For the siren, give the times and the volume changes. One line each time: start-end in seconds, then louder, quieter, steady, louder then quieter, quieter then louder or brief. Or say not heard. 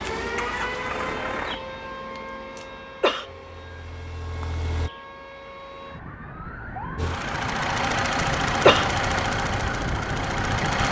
0.0-10.8 quieter then louder.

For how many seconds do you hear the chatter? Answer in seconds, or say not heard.
not heard.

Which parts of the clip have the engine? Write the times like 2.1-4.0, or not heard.
0.2-1.6, 3.2-4.9, 7.0-10.8.